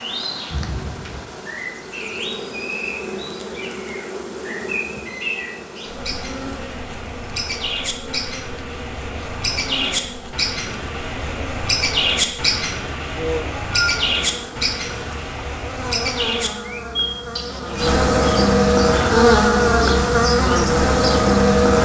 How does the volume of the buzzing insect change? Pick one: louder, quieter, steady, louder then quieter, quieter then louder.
louder.